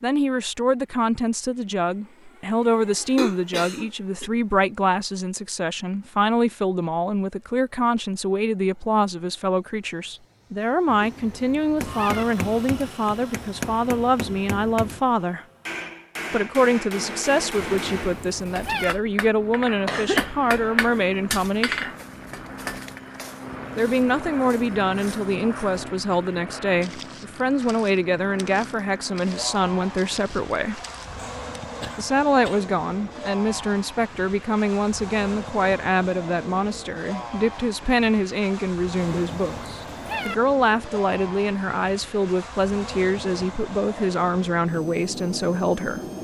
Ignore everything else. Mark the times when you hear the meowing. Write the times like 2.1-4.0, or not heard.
10.8-12.2, 17.6-18.9, 39.0-40.4.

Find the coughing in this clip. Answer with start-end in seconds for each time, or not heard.
3.1-4.3, 19.9-20.6, 31.1-32.6.